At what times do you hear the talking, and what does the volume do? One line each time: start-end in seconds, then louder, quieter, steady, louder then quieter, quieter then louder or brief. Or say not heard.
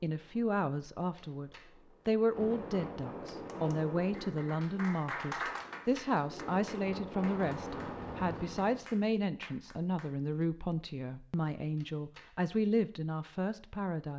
0.0-14.1 steady.